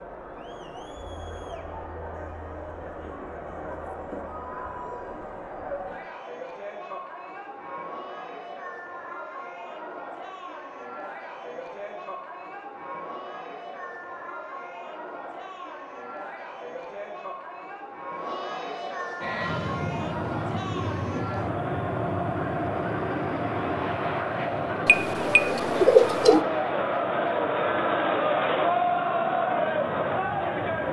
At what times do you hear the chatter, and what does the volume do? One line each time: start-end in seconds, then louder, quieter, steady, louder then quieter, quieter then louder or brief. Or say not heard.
0.0-30.8 louder.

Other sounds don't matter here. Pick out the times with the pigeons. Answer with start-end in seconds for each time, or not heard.
24.9-26.4.